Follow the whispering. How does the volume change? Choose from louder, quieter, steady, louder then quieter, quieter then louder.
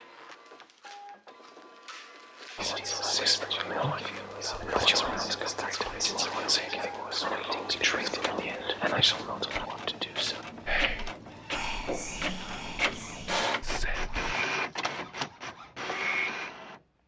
quieter.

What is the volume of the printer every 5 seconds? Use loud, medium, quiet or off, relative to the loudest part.
quiet, medium, loud, loud.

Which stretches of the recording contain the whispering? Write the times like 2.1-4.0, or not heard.
2.5-14.3.